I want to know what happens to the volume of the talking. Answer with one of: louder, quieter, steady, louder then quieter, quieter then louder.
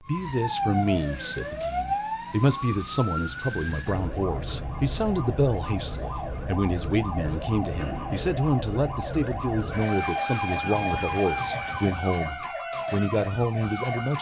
steady.